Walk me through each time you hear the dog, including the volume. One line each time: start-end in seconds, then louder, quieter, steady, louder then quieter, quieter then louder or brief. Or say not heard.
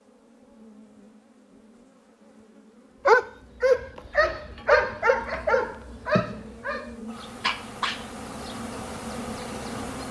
3.0-8.1 quieter.